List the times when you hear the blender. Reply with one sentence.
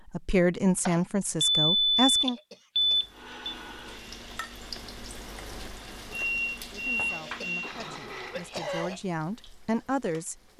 You can hear the blender from 3.1 to 8.6 s.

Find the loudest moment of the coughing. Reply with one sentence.
The volume of the coughing peaks at 9 seconds.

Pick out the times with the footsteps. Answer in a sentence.
The footsteps can't be heard in this clip.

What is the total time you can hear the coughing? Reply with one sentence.
You can hear the coughing for 3 seconds altogether.